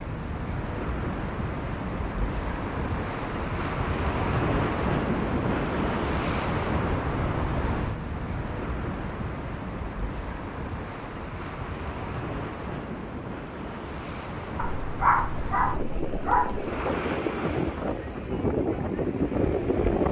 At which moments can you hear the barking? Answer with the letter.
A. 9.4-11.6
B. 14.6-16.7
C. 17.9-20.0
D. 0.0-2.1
B.